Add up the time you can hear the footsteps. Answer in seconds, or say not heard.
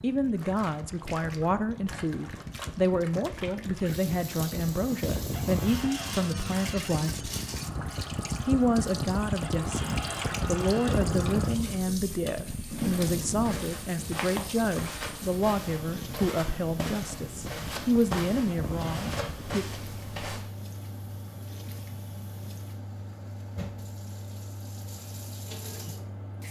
8 s.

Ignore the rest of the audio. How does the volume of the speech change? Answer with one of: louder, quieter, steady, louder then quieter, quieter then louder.
steady.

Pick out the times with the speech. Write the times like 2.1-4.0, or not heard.
0.0-7.3, 8.4-19.6.